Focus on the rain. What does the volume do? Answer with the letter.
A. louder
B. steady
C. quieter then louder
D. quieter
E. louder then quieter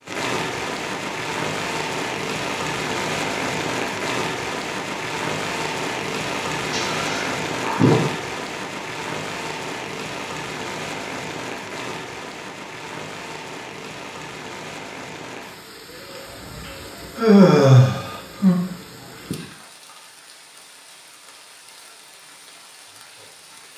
D.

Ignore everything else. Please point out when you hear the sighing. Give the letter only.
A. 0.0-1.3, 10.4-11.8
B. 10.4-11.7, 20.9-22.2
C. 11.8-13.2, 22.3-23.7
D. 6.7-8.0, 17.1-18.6
D.